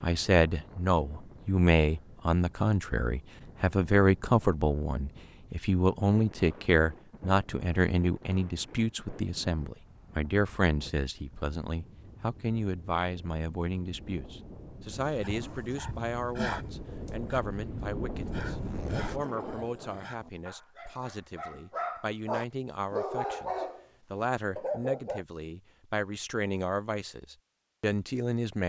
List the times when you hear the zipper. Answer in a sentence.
The zipper can be heard from 18.1 to 19.2 s.